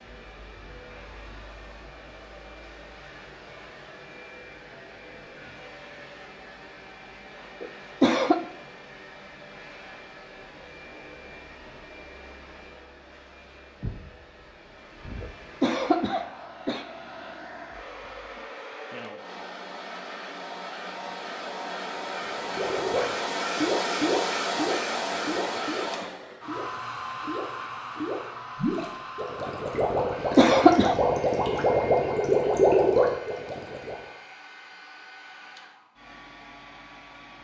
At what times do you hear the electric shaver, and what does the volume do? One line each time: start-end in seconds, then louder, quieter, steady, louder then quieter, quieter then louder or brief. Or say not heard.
not heard.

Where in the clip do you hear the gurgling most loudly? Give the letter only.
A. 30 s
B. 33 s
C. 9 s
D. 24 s
B.